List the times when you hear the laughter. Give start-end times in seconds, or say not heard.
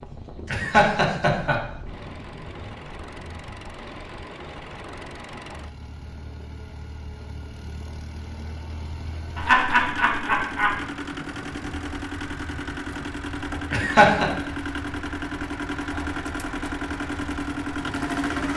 0.5-1.6, 9.3-10.8, 13.7-14.3.